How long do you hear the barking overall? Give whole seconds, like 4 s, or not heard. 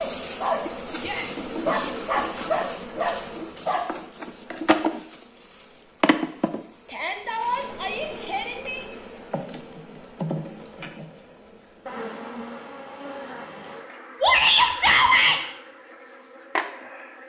4 s.